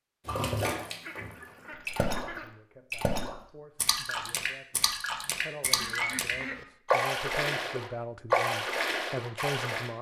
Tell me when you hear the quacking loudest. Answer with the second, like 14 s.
6 s.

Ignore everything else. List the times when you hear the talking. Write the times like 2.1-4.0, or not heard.
2.4-9.9.